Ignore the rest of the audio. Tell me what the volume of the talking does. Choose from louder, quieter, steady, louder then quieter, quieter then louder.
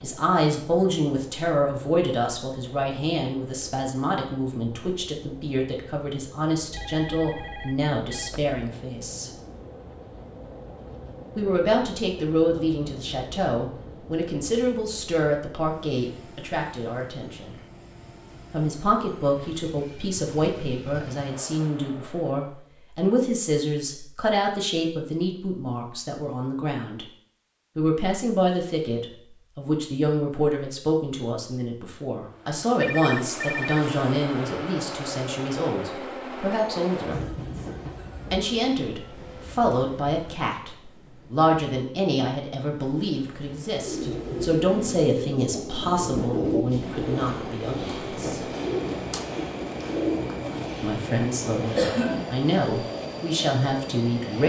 steady.